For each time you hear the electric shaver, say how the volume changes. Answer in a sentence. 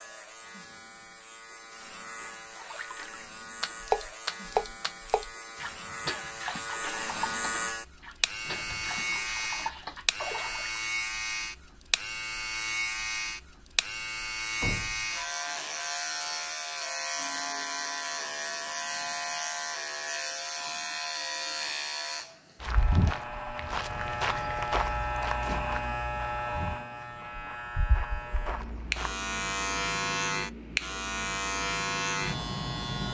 The electric shaver can be heard from 0.0 to 33.0 s, getting louder.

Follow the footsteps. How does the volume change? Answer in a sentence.
The loudness of the footsteps goes down.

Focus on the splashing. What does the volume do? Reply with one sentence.
The loudness of the splashing goes down, then up.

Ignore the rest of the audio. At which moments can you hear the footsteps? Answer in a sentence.
You can hear the footsteps from 22.6 to 29.1 s.